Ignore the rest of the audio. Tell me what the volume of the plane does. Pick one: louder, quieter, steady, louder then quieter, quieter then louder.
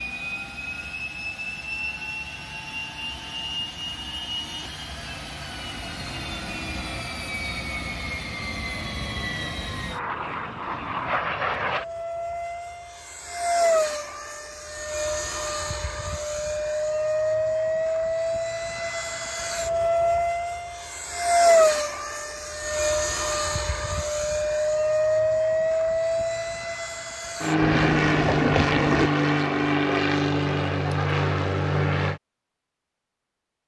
louder.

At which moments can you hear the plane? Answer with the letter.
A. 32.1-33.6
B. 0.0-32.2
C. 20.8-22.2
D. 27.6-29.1
B.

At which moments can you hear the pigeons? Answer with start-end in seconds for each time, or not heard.
27.6-29.1.